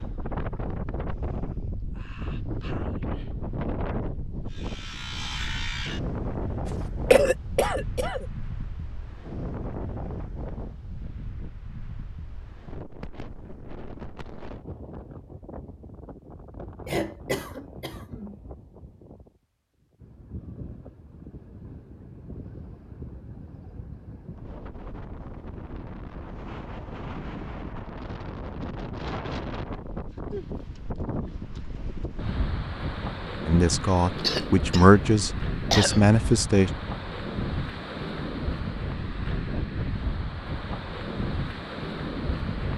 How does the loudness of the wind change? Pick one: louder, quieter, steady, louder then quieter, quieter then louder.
quieter then louder.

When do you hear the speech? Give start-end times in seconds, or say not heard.
33.5-36.7.